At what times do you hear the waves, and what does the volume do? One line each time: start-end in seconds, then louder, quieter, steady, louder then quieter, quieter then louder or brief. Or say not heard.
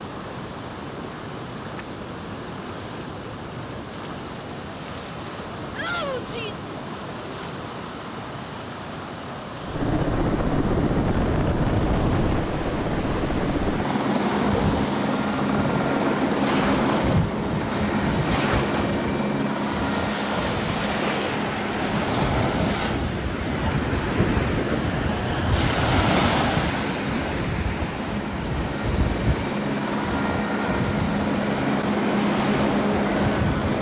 0.0-33.7 louder then quieter.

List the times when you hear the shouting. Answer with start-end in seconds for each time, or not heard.
5.8-6.5.